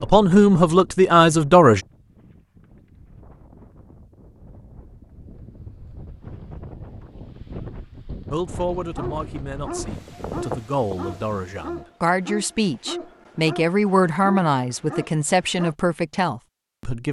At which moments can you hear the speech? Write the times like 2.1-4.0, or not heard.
0.0-1.8, 8.3-17.0.